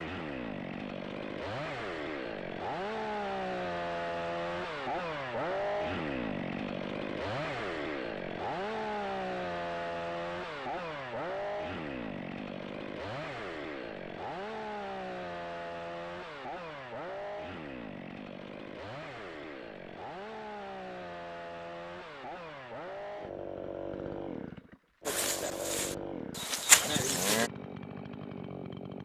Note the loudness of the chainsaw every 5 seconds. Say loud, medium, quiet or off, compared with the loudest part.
loud, loud, loud, medium, medium, medium.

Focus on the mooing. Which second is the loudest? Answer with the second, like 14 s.
27 s.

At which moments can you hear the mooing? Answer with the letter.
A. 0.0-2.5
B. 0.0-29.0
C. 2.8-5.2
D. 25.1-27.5
D.